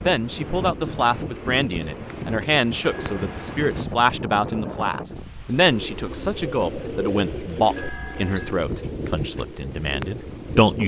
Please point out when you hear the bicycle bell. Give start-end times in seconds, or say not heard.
2.9-3.6, 7.8-8.6.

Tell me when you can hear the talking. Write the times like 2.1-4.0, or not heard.
0.0-10.8.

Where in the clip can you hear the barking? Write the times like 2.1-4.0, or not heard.
not heard.